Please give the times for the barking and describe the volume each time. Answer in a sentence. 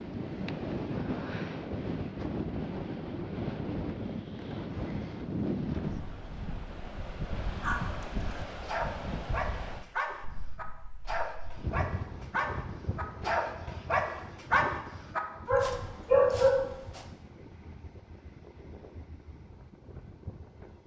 You can hear the barking from 7.6 to 17.0 s, getting louder.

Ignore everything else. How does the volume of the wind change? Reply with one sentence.
The volume of the wind goes down.